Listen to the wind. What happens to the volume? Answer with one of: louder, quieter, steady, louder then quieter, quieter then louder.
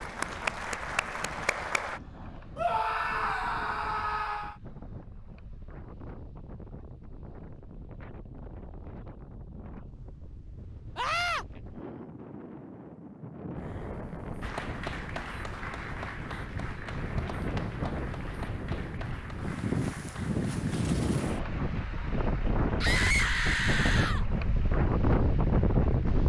louder.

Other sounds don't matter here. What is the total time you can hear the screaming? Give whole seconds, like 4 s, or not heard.
4 s.